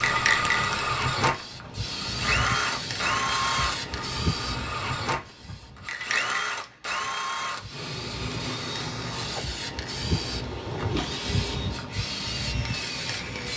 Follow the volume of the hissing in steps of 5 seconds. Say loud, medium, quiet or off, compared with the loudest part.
loud, medium, loud.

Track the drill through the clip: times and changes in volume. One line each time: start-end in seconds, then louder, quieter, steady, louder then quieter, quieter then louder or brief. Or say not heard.
0.0-13.5 quieter.